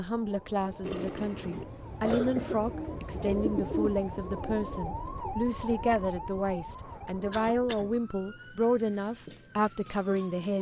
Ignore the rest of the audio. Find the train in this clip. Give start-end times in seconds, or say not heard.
not heard.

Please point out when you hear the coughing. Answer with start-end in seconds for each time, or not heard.
0.8-2.6, 7.3-7.9.